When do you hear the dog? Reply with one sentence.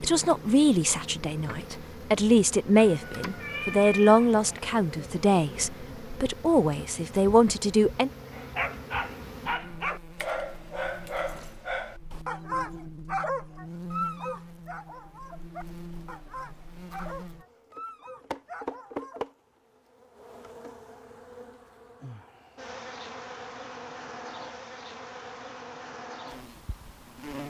You can hear the dog from 8.3 to 19.2 s.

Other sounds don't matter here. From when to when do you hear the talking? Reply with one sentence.
The talking can be heard from 0.0 to 8.1 s.